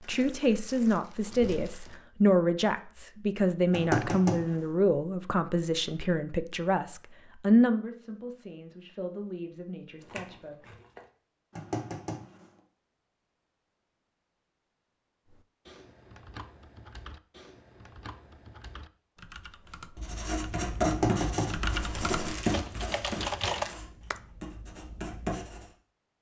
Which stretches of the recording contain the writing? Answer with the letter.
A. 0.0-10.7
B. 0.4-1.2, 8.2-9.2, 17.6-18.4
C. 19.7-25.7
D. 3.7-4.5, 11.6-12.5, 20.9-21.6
C.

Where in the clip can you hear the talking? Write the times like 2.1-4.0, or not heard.
0.0-10.7.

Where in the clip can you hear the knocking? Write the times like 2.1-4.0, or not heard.
3.7-4.5, 11.6-12.5, 20.9-21.6.